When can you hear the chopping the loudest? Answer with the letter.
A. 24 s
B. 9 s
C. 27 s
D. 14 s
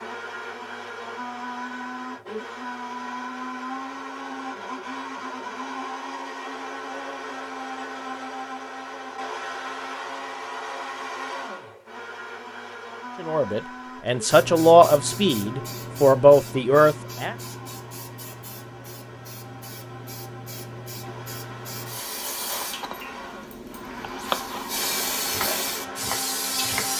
A.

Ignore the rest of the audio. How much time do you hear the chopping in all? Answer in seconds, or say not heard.
4 s.